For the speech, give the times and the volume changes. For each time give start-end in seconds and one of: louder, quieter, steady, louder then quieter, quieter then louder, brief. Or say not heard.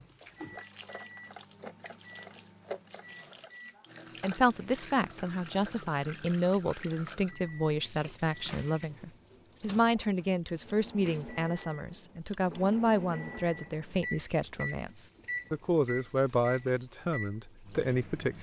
4.2-18.3 steady.